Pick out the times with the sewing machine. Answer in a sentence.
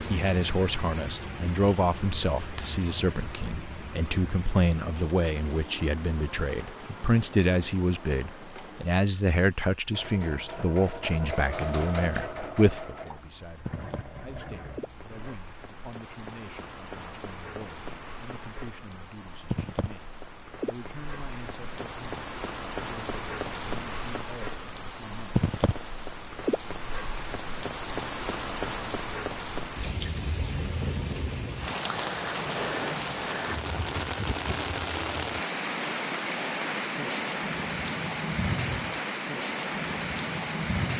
The sewing machine can be heard from 9.9 to 15.4 s.